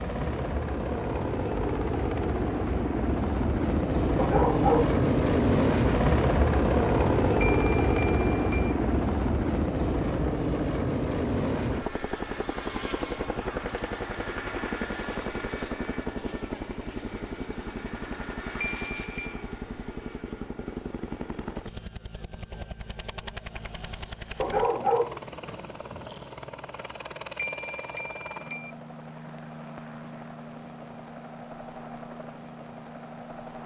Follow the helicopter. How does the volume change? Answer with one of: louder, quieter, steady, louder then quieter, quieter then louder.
quieter.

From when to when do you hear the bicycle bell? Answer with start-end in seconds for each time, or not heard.
7.4-8.8, 18.6-19.4, 27.4-28.7.